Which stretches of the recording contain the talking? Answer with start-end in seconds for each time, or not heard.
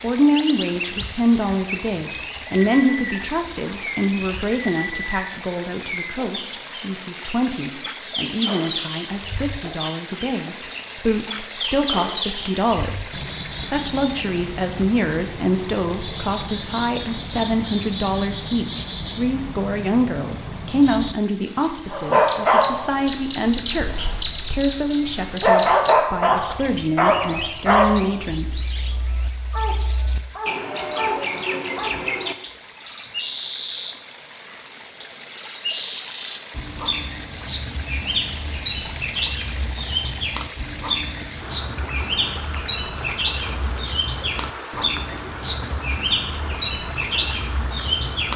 0.0-28.6.